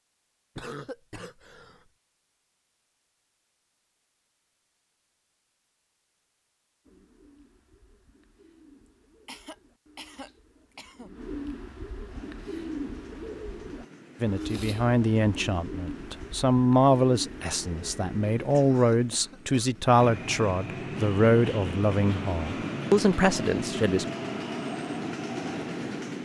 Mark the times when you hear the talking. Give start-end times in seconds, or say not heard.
14.2-24.1.